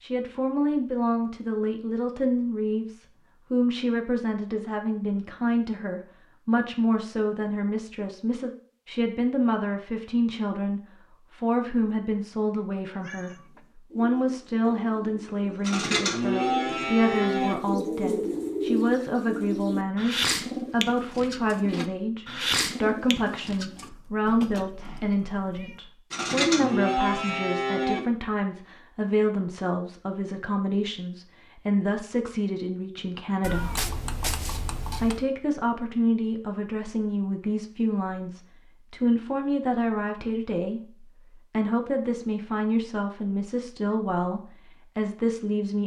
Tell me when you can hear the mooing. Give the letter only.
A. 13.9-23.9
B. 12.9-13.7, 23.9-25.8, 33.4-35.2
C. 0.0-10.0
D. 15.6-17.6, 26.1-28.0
D.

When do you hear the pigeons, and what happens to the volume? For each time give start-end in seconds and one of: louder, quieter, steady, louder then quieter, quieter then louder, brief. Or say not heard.
13.9-23.9 louder.